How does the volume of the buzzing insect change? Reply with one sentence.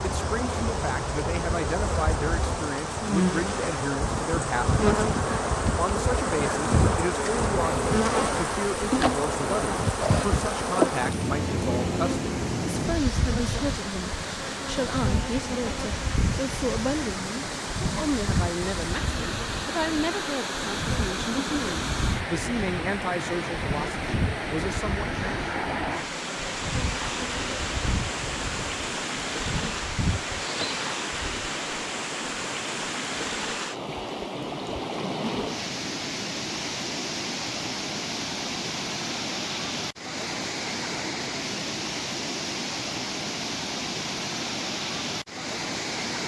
The loudness of the buzzing insect goes down.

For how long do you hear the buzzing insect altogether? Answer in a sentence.
The buzzing insect can be heard for 31 seconds in total.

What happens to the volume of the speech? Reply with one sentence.
The loudness of the speech stays about the same.